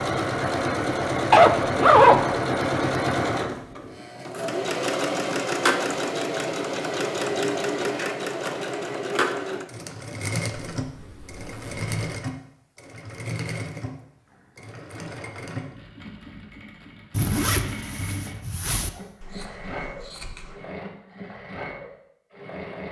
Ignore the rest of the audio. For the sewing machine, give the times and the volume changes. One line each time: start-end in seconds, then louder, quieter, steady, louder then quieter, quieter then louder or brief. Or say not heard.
0.0-22.8 quieter.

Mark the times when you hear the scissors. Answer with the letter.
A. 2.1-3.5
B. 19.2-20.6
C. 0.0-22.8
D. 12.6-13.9
B.